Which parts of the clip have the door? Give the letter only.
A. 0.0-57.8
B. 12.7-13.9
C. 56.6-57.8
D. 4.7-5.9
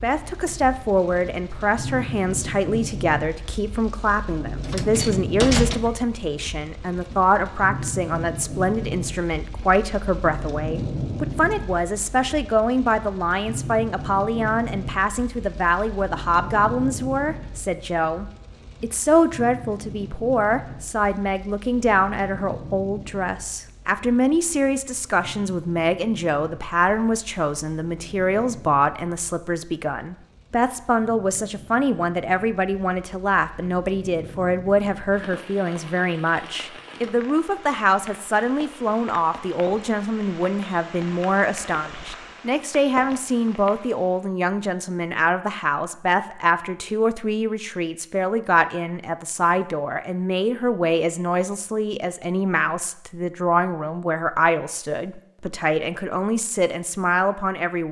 D.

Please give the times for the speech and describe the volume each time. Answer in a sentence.
You can hear the speech from 0.0 to 57.8 s, at a steady volume.